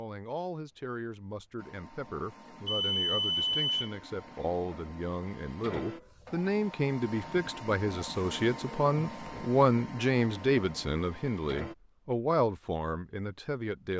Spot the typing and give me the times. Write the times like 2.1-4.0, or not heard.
not heard.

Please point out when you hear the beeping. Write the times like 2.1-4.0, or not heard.
2.6-3.8.